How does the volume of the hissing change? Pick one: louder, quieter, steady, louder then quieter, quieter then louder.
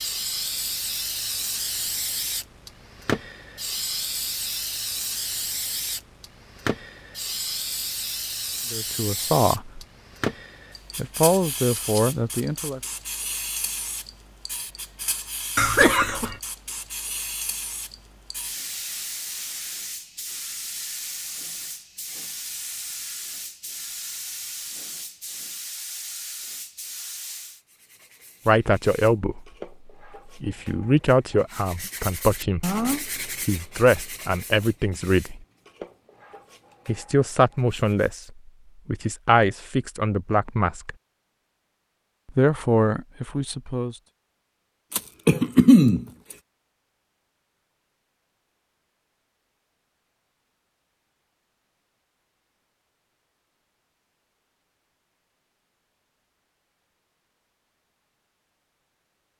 quieter.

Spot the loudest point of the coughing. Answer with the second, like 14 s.
46 s.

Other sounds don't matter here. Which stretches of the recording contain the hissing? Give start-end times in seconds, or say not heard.
0.0-27.6.